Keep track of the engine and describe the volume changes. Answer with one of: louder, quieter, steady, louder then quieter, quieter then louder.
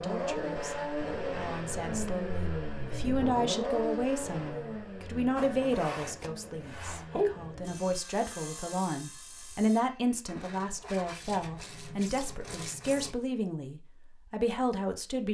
quieter.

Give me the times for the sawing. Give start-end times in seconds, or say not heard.
5.3-13.2.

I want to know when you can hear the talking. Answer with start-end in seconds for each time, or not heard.
0.0-15.2.